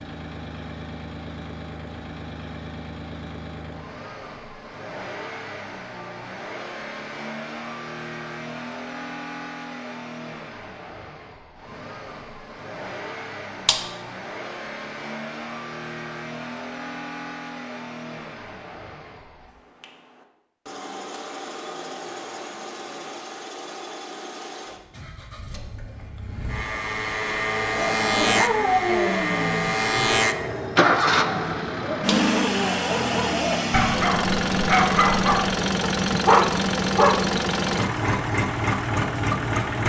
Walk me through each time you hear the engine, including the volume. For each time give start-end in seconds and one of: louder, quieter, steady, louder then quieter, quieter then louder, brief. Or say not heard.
0.0-39.8 louder.